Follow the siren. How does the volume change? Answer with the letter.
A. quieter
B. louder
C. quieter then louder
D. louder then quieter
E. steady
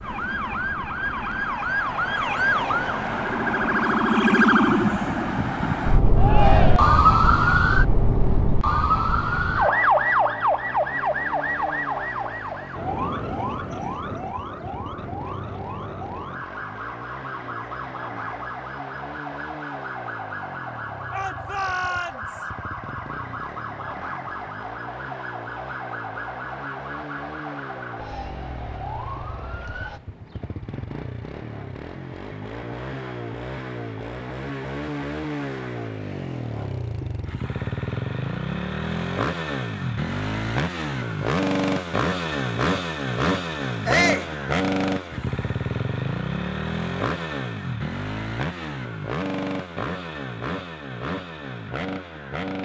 A.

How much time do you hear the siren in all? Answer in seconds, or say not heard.
30 s.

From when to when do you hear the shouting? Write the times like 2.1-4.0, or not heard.
6.2-7.0, 21.1-22.4, 43.9-44.3.